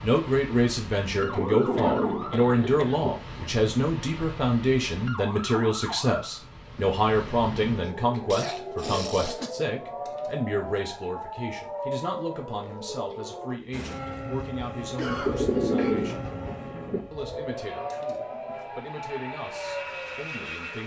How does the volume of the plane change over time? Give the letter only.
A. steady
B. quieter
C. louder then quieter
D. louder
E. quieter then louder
E.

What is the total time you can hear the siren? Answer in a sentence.
You can hear the siren for 17 seconds altogether.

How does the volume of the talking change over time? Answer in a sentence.
The volume of the talking goes down.